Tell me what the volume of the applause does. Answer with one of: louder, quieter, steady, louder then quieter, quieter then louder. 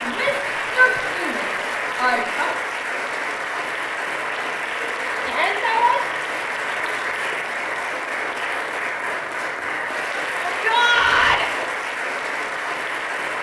steady.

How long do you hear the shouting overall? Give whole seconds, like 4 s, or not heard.
4 s.